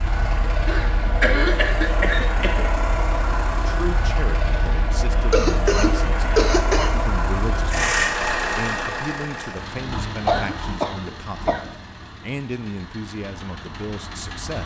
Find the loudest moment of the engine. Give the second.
8 s.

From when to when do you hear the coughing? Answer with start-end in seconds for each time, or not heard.
0.7-2.6, 5.3-7.0, 10.2-11.6.